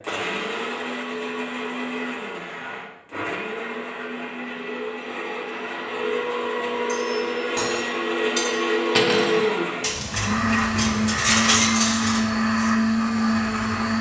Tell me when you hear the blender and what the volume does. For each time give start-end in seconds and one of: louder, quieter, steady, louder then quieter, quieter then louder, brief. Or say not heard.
0.0-13.9 louder.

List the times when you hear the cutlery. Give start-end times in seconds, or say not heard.
6.8-12.7.